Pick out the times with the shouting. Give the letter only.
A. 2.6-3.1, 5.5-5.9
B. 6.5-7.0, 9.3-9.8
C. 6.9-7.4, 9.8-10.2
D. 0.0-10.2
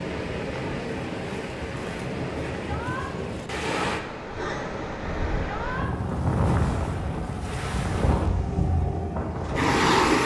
A.